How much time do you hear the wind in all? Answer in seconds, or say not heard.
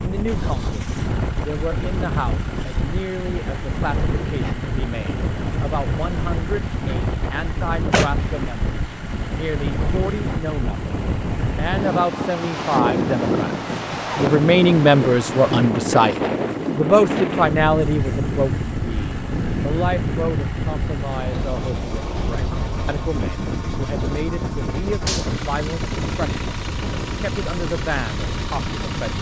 29 s.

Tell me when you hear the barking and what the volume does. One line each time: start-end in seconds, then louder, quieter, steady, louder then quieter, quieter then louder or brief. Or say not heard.
not heard.